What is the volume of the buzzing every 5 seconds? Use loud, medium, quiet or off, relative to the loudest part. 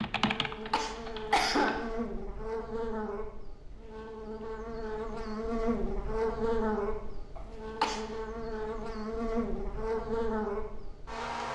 medium, loud, loud.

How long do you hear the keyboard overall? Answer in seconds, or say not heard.
2 s.